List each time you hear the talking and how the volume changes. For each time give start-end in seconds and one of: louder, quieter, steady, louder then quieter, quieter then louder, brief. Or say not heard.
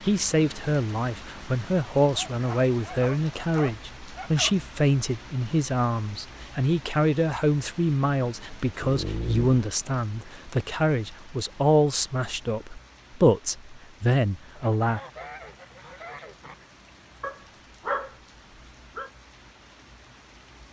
0.0-15.0 steady.